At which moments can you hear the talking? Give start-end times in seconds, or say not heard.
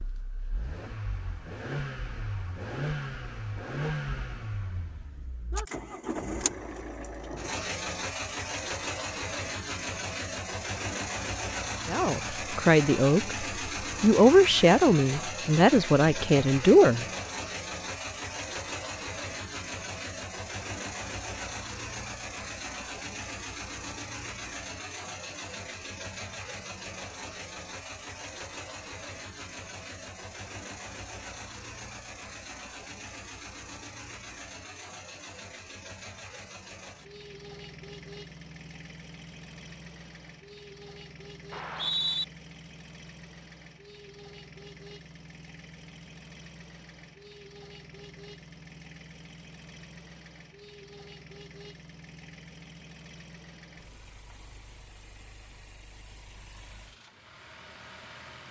11.8-17.1.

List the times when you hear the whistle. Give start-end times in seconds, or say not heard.
41.5-42.2.